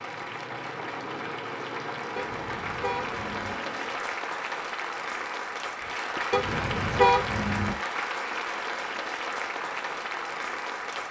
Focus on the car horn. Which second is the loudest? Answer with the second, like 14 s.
7 s.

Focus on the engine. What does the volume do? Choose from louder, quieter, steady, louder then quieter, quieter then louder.
steady.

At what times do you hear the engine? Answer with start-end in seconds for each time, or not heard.
0.0-4.2.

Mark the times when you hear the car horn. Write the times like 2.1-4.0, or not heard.
2.1-3.6, 6.3-7.8.